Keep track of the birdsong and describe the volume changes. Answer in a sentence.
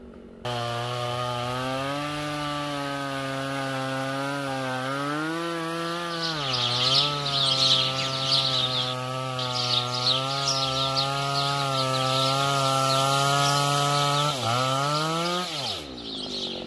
The loudness of the birdsong goes down.